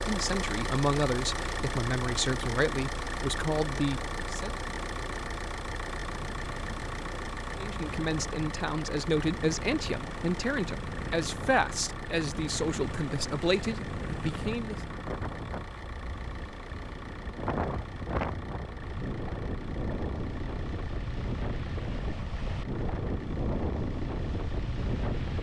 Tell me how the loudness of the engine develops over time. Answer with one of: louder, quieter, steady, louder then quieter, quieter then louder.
quieter.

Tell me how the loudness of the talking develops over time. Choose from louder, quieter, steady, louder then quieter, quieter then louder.
steady.